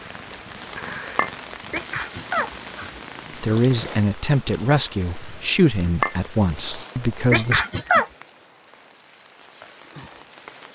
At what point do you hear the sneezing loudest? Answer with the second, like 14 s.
8 s.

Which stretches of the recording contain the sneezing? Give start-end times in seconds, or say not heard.
1.7-3.4, 7.3-8.1.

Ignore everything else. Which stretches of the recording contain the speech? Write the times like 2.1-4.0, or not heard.
3.4-7.7.